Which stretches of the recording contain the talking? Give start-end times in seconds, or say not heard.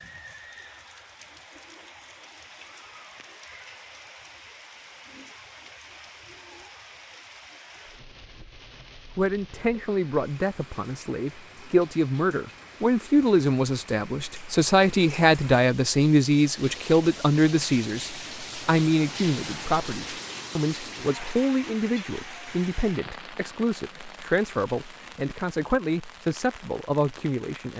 9.2-27.7.